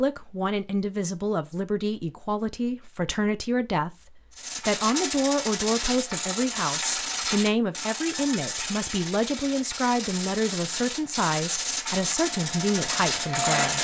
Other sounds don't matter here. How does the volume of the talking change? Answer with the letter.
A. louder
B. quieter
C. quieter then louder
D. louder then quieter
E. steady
E.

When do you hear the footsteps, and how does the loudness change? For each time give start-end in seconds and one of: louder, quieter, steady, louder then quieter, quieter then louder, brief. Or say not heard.
not heard.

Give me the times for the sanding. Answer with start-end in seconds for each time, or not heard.
4.3-13.7.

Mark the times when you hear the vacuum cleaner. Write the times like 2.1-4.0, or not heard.
12.2-13.7.